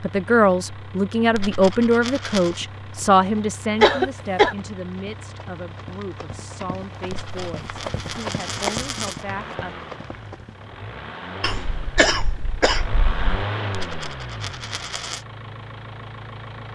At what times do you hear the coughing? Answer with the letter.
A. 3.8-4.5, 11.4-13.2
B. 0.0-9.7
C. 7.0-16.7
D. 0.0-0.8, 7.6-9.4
A.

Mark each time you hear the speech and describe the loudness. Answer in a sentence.
You can hear the speech from 0.0 to 9.7 s, getting quieter.